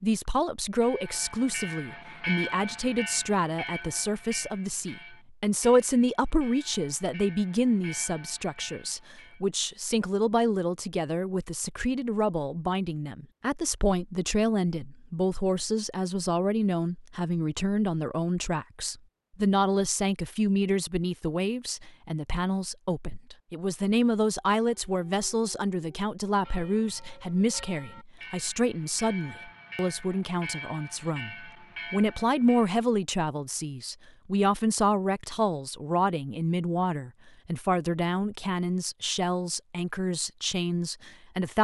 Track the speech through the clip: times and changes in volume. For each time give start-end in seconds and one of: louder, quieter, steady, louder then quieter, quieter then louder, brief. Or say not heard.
0.0-41.5 steady.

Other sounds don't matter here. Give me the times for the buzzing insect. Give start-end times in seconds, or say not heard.
not heard.